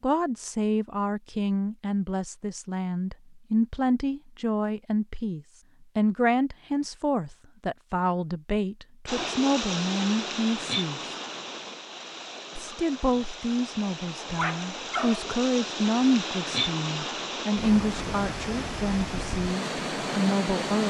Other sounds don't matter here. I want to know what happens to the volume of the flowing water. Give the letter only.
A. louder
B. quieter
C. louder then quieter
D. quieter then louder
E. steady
D.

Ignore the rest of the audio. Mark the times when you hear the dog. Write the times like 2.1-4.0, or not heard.
14.2-15.3.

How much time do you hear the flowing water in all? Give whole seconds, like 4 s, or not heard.
12 s.